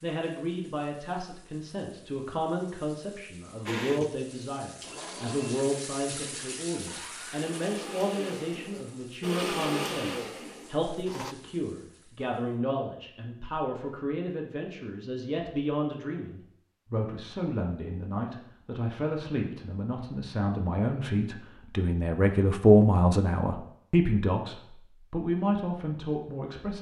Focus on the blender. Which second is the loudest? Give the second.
10 s.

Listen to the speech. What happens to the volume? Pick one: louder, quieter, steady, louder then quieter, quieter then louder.
louder.